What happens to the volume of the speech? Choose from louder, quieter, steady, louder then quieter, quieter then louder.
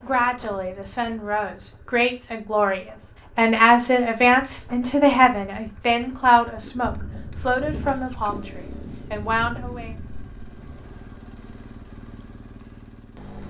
louder then quieter.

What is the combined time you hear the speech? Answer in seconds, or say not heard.
10 s.